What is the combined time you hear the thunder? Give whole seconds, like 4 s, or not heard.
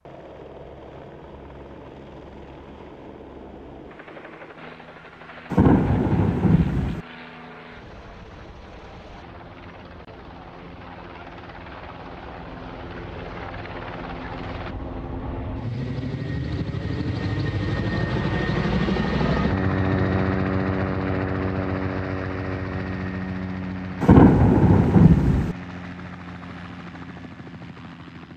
3 s.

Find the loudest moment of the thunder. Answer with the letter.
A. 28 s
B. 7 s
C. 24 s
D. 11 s
C.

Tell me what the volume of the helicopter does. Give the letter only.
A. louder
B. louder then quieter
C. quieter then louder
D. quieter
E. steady
B.